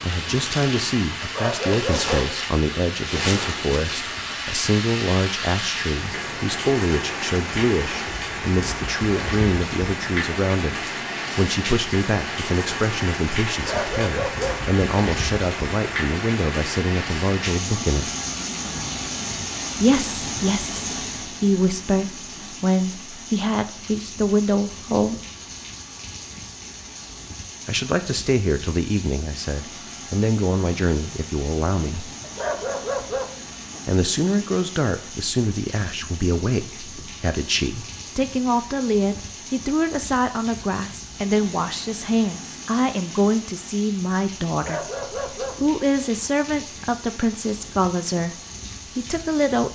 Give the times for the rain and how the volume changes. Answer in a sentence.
The rain can be heard from 0.0 to 49.6 s, getting quieter.